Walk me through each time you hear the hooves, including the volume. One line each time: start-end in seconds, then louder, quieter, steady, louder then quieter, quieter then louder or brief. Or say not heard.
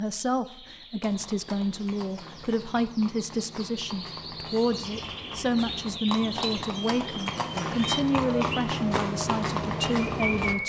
1.0-10.6 louder.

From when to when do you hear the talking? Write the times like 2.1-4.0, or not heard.
0.0-10.6.